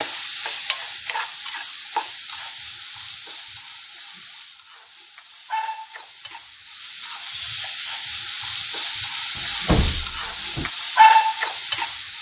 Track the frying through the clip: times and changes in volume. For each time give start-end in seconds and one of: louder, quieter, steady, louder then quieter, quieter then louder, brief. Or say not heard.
0.0-12.1 quieter then louder.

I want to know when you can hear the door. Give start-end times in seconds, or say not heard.
9.3-10.7.